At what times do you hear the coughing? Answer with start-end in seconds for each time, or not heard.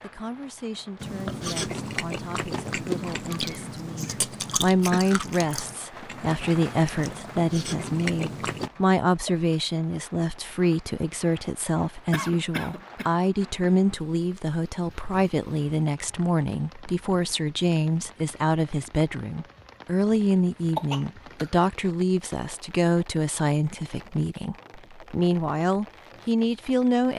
3.2-5.0, 12.1-13.1, 20.8-21.7.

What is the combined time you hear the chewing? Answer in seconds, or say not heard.
8 s.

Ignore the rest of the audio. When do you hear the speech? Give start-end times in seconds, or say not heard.
0.0-27.1.